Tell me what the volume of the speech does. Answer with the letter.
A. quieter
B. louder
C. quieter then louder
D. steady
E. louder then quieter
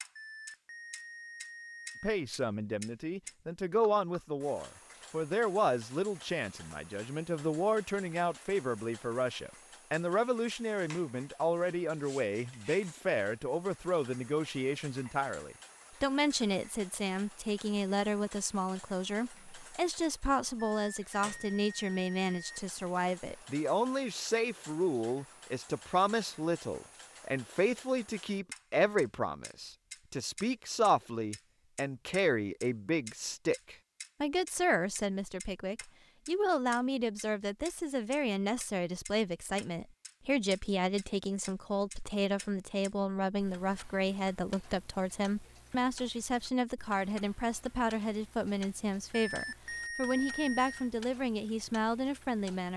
D.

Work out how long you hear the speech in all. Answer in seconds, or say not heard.
51 s.